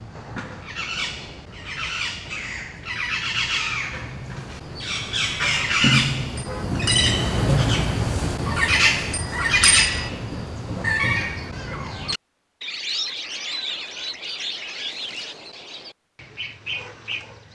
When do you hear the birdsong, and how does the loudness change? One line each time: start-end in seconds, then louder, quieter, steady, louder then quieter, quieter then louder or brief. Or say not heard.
0.0-17.4 louder then quieter.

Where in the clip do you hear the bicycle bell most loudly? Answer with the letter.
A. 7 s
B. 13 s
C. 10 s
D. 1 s
C.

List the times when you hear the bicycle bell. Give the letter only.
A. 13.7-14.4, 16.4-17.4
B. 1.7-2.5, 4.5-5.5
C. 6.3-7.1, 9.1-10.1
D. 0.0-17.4
C.